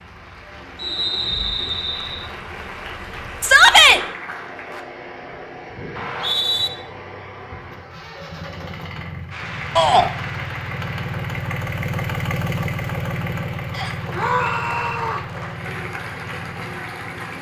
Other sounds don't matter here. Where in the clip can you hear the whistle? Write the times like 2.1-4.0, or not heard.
0.8-2.3, 6.0-6.7, 13.7-14.9.